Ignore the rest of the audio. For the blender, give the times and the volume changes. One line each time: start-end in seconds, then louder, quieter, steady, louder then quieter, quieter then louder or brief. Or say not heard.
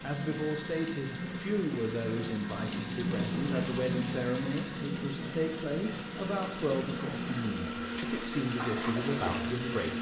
0.0-9.9 louder.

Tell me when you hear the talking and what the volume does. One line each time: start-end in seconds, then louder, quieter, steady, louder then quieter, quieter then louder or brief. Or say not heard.
0.0-9.9 steady.